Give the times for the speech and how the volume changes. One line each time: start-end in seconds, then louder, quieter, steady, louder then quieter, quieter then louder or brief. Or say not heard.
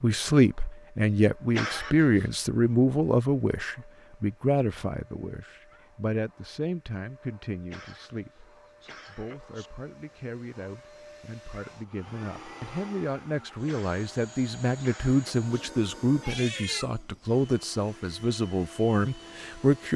0.0-19.9 quieter then louder.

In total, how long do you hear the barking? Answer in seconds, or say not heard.
not heard.